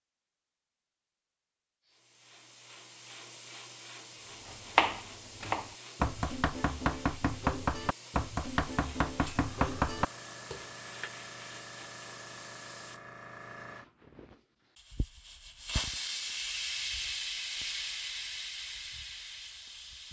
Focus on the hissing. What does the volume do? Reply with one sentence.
The loudness of the hissing goes up.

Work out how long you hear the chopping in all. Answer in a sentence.
The chopping can be heard for 7 seconds in total.